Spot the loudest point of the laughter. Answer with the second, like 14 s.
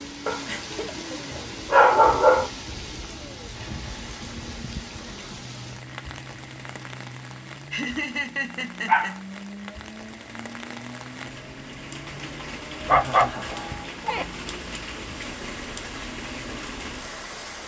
8 s.